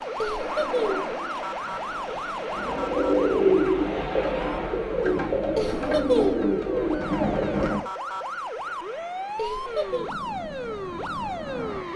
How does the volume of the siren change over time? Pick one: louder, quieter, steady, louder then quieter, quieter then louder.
quieter then louder.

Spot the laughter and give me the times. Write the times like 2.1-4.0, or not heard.
0.2-1.1, 5.5-6.5, 9.3-10.1.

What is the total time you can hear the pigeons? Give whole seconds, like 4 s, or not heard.
5 s.